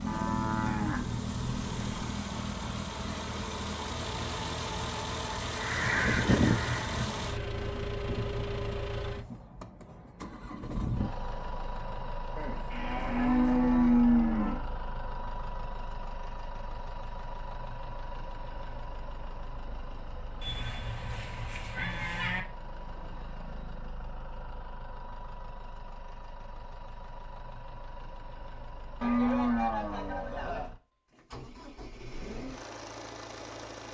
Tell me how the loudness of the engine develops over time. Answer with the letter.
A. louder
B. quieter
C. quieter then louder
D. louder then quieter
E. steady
B.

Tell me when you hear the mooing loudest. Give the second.
14 s.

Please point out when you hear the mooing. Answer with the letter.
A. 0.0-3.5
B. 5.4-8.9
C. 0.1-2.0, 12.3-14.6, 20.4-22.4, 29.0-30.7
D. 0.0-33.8
C.